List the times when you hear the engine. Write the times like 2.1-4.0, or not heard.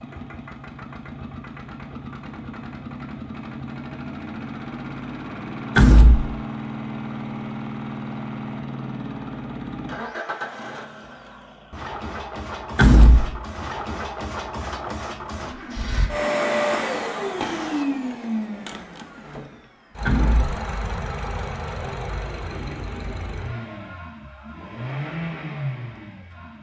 0.0-26.5.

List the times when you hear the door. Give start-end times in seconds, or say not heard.
5.8-6.3, 12.8-13.4, 20.1-20.6.